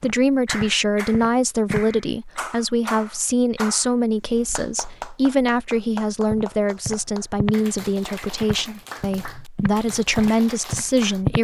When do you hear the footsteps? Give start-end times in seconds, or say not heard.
0.0-1.9, 6.2-7.6, 8.4-11.3.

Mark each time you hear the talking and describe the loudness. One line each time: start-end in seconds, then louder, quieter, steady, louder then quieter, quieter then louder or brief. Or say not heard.
0.0-11.3 steady.